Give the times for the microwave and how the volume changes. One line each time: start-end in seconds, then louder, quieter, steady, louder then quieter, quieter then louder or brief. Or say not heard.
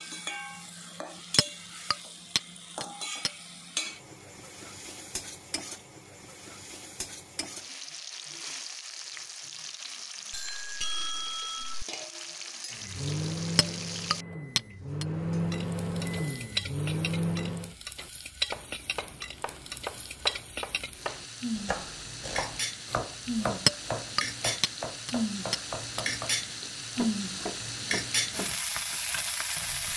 12.7-17.8 quieter then louder.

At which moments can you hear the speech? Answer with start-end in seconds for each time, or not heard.
not heard.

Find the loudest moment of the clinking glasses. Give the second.
24 s.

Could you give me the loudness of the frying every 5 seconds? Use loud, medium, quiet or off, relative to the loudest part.
medium, medium, medium, medium, loud, loud.